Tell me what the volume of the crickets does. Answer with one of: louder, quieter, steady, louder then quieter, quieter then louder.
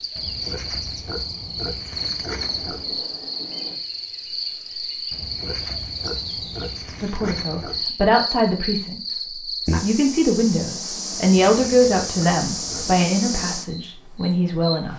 steady.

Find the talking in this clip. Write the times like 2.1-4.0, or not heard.
7.0-9.0, 9.8-14.9.